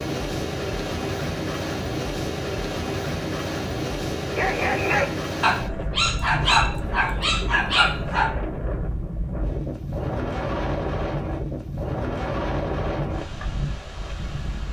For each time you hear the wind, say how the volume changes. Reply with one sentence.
The wind can be heard from 0.0 to 14.6 s, at a steady volume.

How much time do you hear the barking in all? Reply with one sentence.
The barking can be heard for 4 seconds in total.